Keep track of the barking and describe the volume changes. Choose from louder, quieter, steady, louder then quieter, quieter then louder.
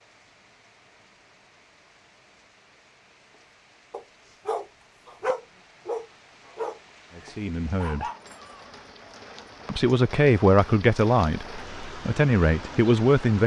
quieter then louder.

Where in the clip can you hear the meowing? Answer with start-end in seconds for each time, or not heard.
not heard.